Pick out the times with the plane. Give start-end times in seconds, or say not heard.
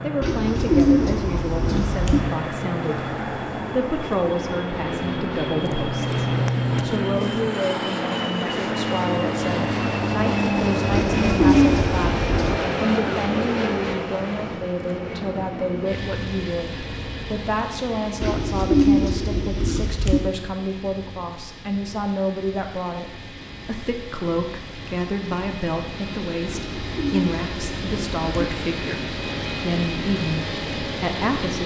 0.0-31.6.